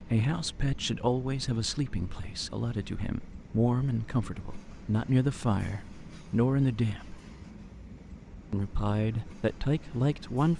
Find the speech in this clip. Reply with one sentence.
You can hear the speech from 0.0 to 7.2 s and from 8.5 to 10.5 s.